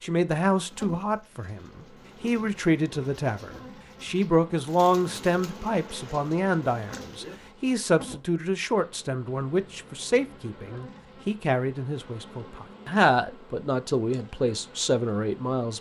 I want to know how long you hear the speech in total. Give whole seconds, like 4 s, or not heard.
16 s.